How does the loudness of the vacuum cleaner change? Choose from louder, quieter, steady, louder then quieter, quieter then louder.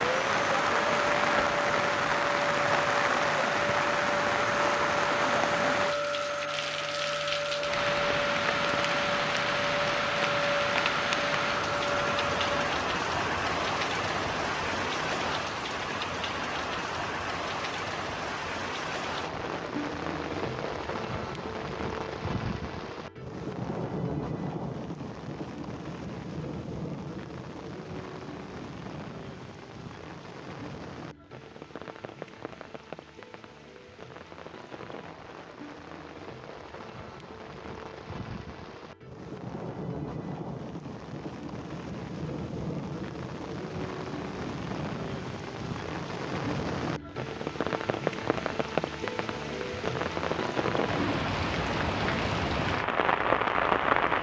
steady.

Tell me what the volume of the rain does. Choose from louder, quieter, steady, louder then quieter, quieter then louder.
quieter then louder.